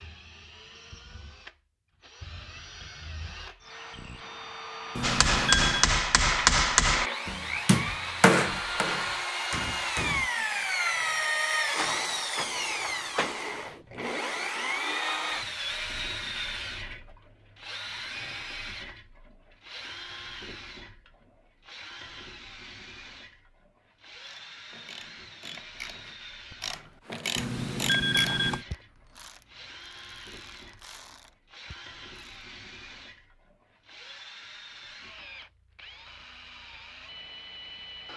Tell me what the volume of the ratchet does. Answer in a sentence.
The volume of the ratchet goes up, then down.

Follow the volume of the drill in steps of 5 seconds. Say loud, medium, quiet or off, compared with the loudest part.
quiet, loud, loud, medium, quiet, quiet, quiet, quiet.